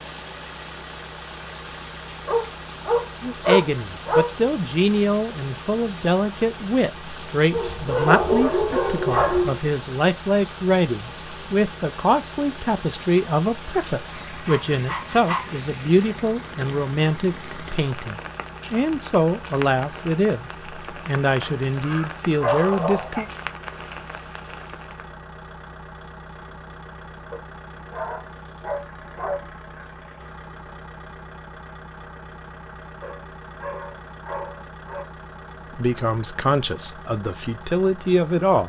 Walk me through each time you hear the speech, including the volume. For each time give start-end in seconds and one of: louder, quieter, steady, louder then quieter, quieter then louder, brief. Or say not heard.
3.2-23.2 steady
35.8-38.6 brief.